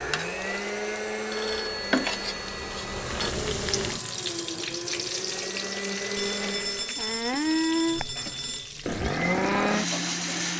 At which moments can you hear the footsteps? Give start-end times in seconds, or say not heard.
not heard.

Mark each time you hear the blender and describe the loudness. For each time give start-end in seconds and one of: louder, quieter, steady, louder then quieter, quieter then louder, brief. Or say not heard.
0.0-10.5 quieter then louder.